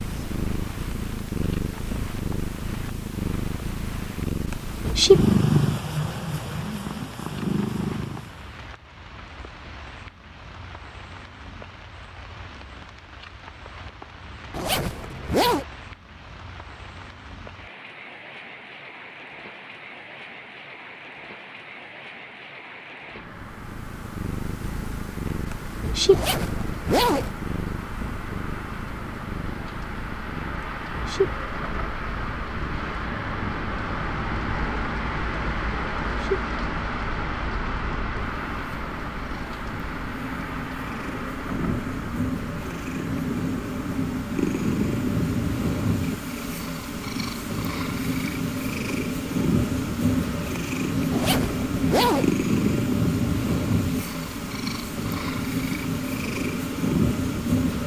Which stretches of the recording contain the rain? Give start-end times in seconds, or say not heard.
0.0-57.8.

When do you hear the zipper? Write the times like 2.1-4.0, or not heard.
14.5-15.7, 26.1-27.3, 51.1-52.4.